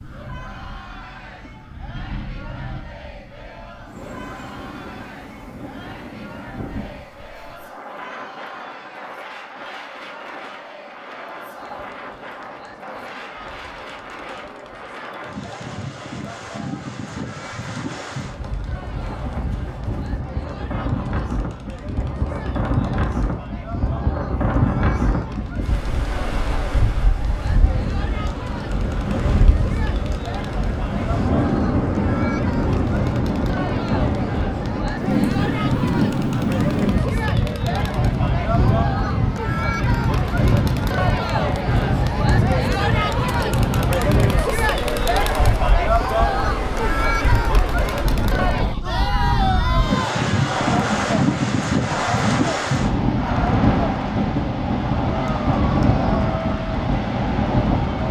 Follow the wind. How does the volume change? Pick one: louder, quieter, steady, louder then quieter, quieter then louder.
louder.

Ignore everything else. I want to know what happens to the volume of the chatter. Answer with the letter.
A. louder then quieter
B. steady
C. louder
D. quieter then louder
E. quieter
C.